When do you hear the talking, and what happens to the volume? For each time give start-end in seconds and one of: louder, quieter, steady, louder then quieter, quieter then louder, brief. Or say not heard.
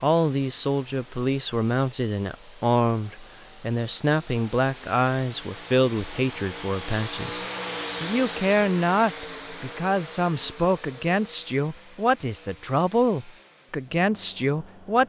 0.0-15.0 steady.